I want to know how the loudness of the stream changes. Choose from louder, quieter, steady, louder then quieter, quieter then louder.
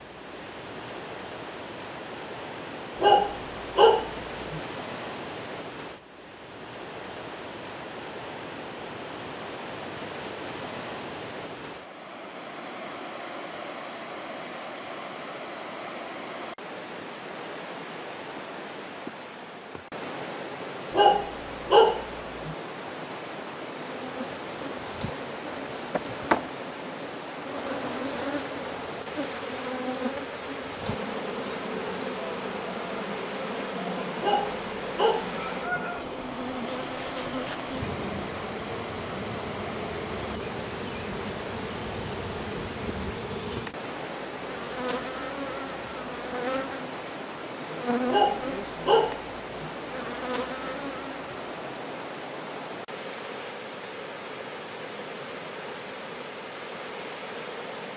steady.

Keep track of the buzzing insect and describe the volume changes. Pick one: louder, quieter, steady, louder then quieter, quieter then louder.
steady.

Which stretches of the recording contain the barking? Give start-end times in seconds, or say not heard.
3.0-4.6, 20.9-22.6, 34.2-35.8, 48.1-49.7.